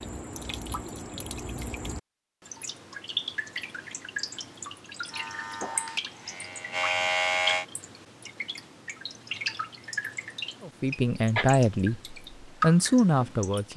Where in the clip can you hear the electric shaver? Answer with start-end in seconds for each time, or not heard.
5.1-7.7.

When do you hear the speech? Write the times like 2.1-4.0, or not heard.
10.6-13.7.